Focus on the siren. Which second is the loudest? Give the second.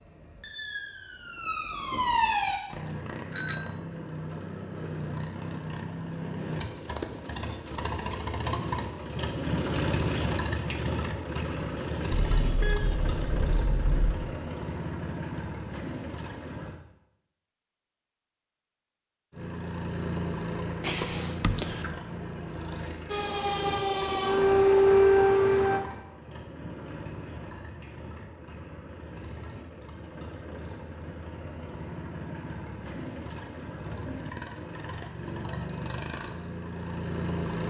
25 s.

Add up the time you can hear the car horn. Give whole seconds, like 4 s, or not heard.
2 s.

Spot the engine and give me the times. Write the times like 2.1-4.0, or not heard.
2.6-16.8, 19.3-37.6.